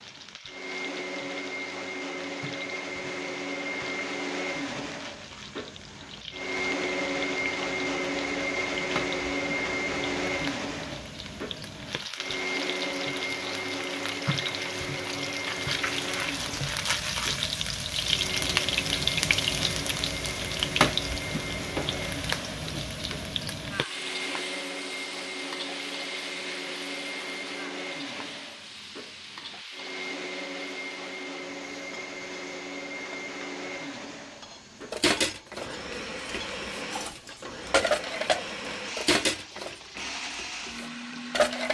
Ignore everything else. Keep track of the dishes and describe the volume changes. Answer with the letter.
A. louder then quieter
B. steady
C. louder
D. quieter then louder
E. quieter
A.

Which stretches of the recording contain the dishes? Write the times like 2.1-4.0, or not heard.
34.9-41.6.